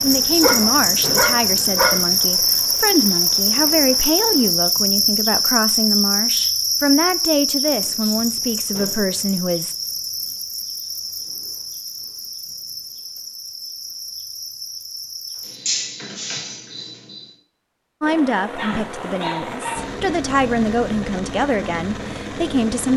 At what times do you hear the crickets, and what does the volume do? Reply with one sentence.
You can hear the crickets from 0.0 to 17.4 s, getting quieter.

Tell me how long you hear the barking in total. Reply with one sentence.
You can hear the barking for 3 seconds altogether.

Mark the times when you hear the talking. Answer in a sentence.
You can hear the talking from 0.0 to 9.8 s and from 18.0 to 22.9 s.